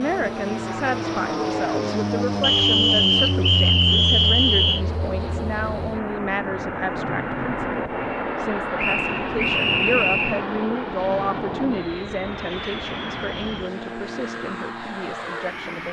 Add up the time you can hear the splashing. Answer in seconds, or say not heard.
not heard.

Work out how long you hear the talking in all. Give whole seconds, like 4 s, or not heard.
16 s.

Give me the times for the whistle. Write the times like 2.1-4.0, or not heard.
2.4-4.8, 8.8-10.4.